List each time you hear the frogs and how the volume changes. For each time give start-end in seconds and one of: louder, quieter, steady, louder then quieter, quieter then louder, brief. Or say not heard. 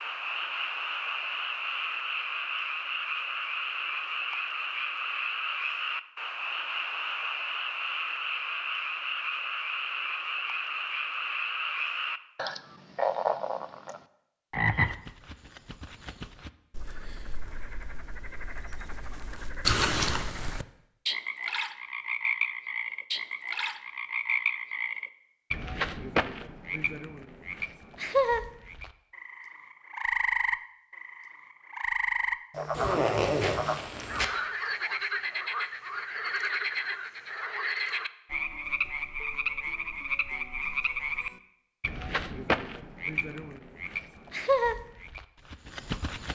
0.0-46.2 steady.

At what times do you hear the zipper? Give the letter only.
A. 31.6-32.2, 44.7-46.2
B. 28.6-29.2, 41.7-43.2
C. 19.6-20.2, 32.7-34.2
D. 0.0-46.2
C.